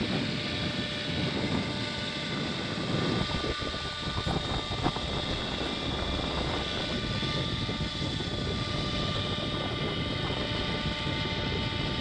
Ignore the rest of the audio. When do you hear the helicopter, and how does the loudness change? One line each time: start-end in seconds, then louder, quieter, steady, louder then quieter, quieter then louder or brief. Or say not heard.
0.0-11.9 steady.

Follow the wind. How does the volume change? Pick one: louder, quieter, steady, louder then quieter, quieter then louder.
steady.